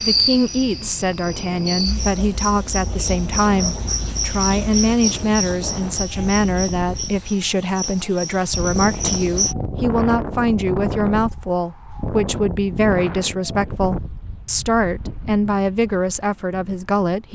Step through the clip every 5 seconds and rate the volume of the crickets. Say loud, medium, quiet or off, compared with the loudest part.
loud, loud, off, off.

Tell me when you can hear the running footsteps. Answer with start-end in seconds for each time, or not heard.
not heard.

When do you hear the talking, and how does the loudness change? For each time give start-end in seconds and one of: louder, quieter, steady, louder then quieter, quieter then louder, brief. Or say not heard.
0.0-17.3 steady.